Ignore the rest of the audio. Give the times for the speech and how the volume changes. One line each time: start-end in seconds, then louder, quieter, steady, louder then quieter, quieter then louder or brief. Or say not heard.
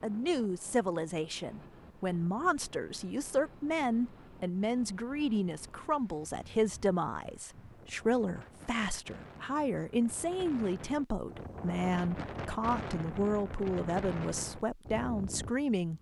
0.0-15.9 steady.